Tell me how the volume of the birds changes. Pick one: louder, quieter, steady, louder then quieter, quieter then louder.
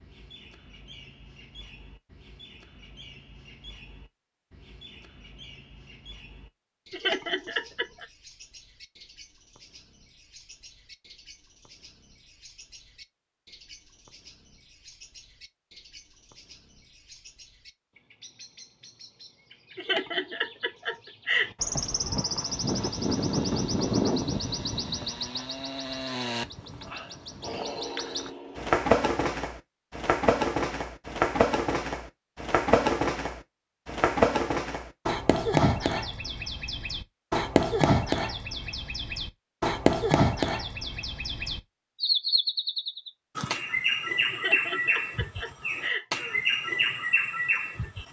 louder.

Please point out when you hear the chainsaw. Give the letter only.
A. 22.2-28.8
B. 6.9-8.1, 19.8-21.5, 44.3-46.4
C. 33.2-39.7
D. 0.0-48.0
A.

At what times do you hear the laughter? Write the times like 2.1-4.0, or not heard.
6.9-8.1, 19.8-21.5, 44.3-46.4.